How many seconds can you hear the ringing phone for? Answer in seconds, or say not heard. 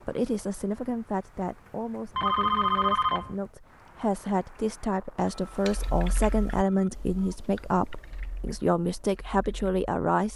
3 s.